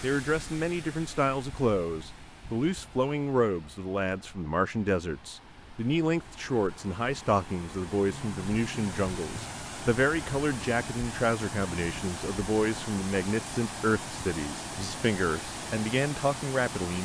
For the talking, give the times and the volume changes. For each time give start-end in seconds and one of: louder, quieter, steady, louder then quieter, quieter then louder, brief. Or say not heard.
0.0-16.9 steady.